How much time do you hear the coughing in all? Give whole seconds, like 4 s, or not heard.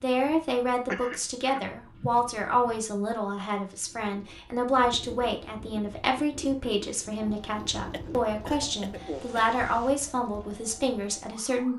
3 s.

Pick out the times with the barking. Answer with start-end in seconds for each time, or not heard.
not heard.